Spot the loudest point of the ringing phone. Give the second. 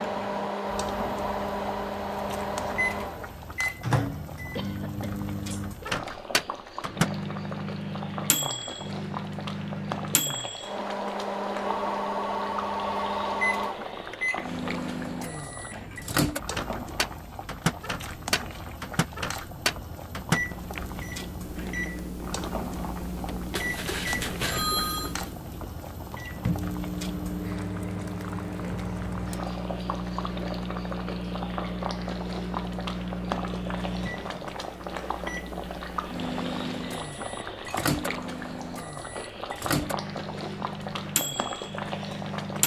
25 s.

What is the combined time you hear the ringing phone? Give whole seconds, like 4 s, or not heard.
4 s.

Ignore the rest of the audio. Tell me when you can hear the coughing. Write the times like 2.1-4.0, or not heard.
4.5-5.9.